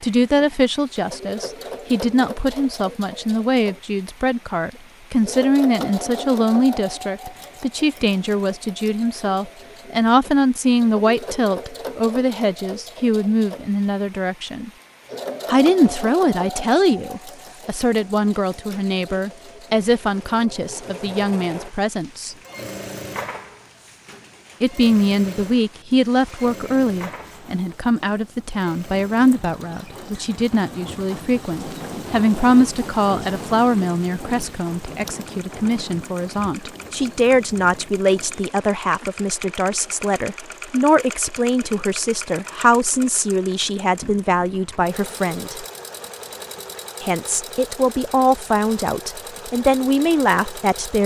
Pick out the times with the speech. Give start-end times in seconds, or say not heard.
0.0-14.7, 15.4-22.4, 24.6-45.6, 47.0-51.0.